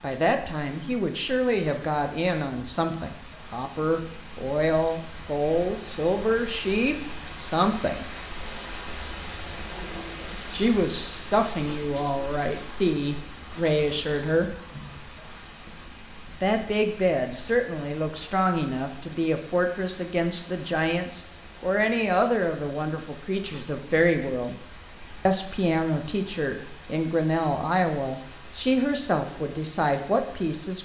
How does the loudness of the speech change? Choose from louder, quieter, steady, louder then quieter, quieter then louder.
steady.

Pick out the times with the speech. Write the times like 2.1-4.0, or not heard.
0.0-8.1, 10.5-14.5, 16.4-24.6, 25.2-30.8.